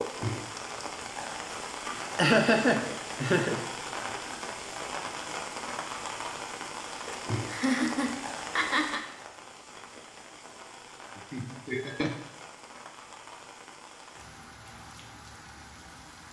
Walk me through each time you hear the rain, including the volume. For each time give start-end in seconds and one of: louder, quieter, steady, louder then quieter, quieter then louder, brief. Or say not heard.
0.0-16.2 quieter.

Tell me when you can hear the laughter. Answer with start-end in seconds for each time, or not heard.
2.1-3.6, 7.5-9.0, 11.2-12.1.